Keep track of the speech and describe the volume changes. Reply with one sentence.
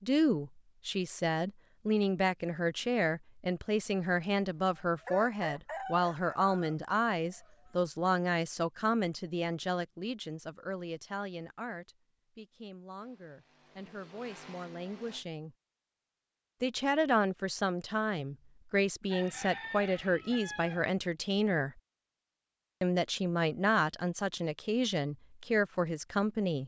The loudness of the speech goes down, then up.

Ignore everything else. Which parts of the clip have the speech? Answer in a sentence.
You can hear the speech from 0.0 to 15.6 s, from 16.6 to 21.8 s and from 22.8 to 26.6 s.